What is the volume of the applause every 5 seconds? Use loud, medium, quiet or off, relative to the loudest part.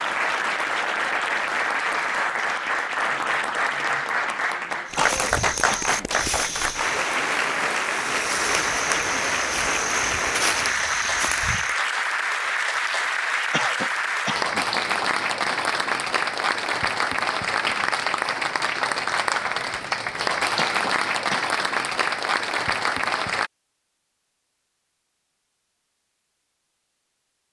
loud, loud, loud, loud, loud, off.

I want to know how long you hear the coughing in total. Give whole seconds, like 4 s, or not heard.
3 s.